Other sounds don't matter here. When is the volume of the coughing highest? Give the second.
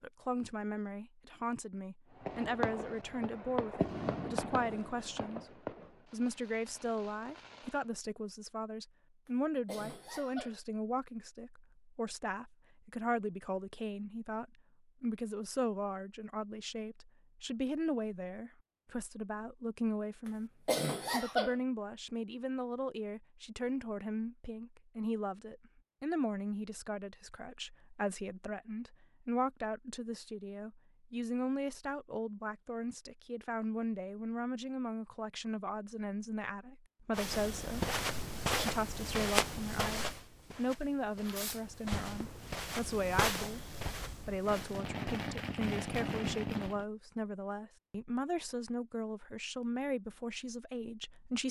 21 s.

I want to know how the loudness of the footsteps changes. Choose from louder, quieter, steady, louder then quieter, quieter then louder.
quieter then louder.